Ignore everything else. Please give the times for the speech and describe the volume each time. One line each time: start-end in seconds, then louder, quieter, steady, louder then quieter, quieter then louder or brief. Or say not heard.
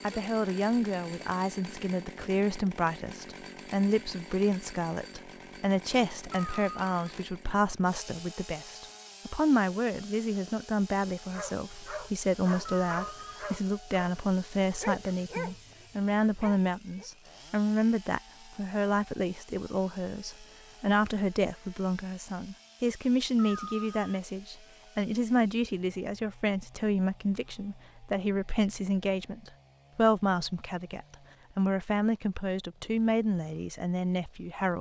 0.0-34.7 steady.